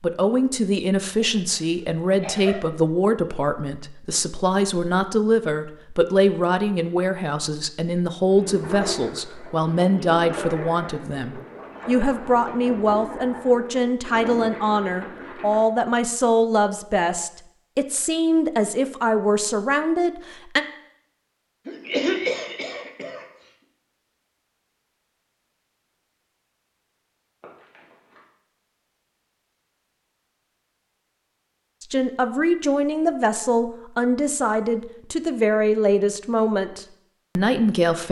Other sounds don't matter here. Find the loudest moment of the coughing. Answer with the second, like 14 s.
22 s.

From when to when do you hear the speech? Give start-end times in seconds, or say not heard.
0.0-20.6, 31.8-38.0.